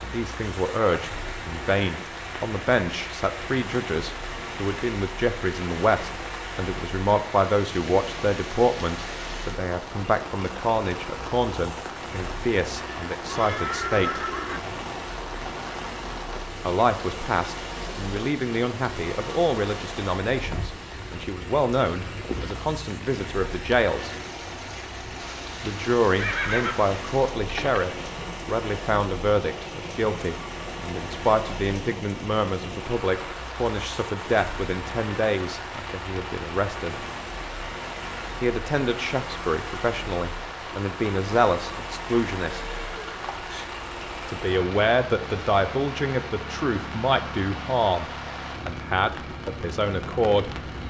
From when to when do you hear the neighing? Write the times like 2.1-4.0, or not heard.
13.2-14.7, 26.1-27.9, 42.5-43.6.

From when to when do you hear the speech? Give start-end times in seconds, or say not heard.
0.0-14.2, 16.6-24.1, 25.6-37.0, 38.4-42.6, 44.2-50.5.